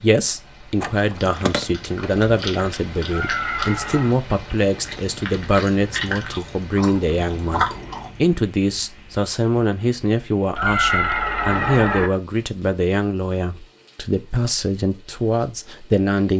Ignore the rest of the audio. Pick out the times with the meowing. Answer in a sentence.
The meowing can be heard from 3.1 to 4.2 s and from 10.6 to 12.1 s.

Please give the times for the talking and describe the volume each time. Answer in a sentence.
You can hear the talking from 0.0 to 16.3 s, at a steady volume.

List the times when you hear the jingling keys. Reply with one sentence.
The jingling keys can be heard from 0.8 to 1.6 s.